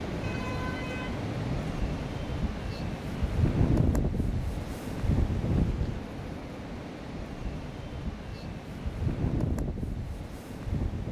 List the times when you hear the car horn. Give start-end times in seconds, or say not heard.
0.2-1.9.